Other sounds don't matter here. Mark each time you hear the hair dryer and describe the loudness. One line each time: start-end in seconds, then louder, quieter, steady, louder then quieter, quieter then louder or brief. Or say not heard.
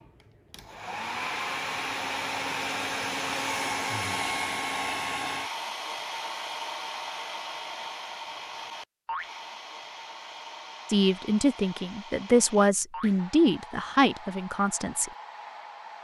0.0-15.9 quieter.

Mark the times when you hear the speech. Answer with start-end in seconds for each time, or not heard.
10.8-15.1.